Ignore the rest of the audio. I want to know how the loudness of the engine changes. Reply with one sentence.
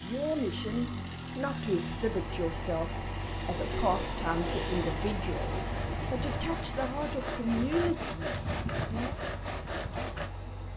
The loudness of the engine goes down.